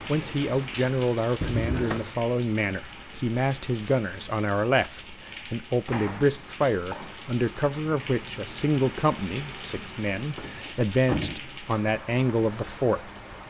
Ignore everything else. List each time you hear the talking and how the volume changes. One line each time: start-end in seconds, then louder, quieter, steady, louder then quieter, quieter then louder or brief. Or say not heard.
0.1-13.1 steady.